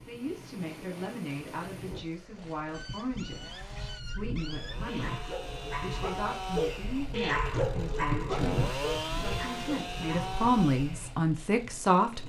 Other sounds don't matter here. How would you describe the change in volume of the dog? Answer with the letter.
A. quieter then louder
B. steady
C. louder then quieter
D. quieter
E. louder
C.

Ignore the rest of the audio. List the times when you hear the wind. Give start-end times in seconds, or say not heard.
0.0-12.2.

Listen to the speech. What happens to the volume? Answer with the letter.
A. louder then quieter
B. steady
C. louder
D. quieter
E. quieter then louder
C.